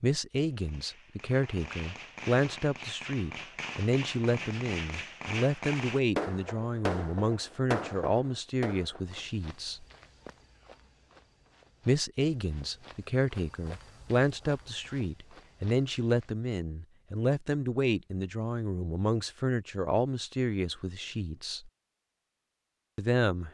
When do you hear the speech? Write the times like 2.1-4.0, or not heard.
0.0-9.8, 11.8-21.7, 22.9-23.4.